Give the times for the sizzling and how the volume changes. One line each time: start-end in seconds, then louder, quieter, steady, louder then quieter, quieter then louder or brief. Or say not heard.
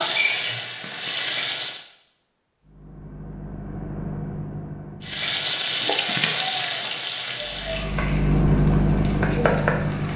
0.0-1.9 brief
5.0-10.1 quieter then louder.